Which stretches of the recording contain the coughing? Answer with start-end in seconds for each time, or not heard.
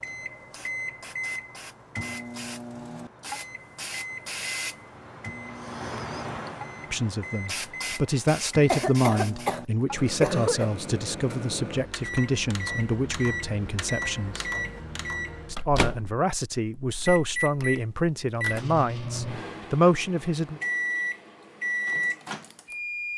8.7-10.7.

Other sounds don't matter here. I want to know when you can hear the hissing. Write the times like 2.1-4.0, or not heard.
0.0-9.6.